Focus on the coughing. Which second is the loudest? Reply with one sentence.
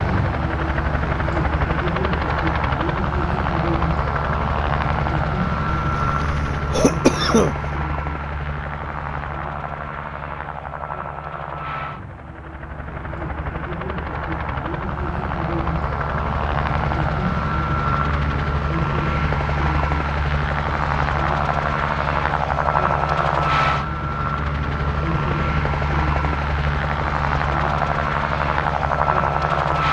The loudest moment of the coughing is at 7 seconds.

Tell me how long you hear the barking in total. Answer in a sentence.
The barking can't be heard in this clip.